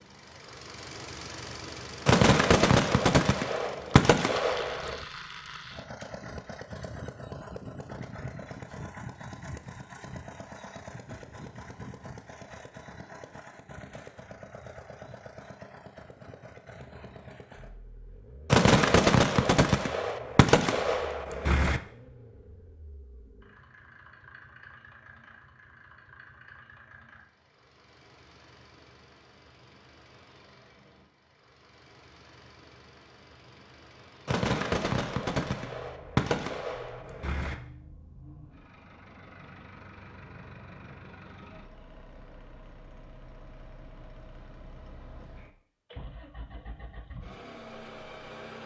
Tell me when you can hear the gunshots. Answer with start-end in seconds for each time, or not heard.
2.0-5.0, 18.5-21.8, 34.2-37.5.